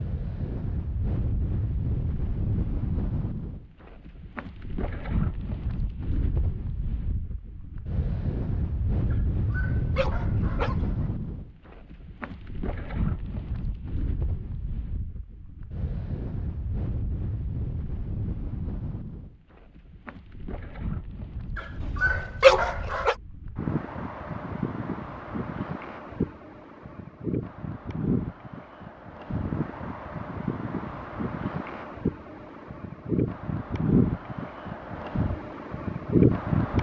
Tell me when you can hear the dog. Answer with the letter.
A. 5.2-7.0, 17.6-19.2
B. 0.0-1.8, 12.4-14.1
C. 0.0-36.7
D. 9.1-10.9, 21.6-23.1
D.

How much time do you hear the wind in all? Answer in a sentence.
You can hear the wind for 37 seconds altogether.